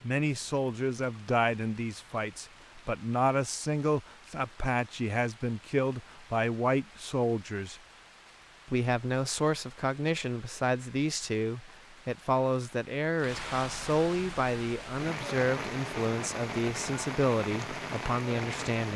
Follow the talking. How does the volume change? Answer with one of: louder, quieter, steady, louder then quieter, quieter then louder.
steady.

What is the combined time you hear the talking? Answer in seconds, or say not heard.
18 s.